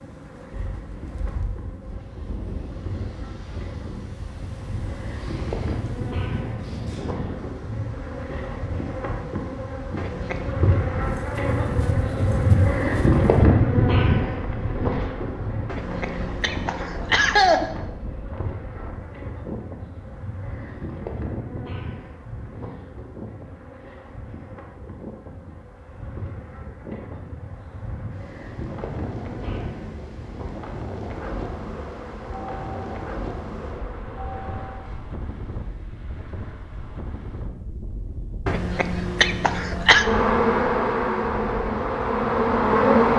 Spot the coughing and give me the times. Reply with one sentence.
You can hear the coughing from 9.9 to 10.5 s, from 15.7 to 17.7 s and from 38.5 to 40.0 s.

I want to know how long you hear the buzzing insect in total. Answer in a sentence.
The buzzing insect can be heard for 38 seconds in total.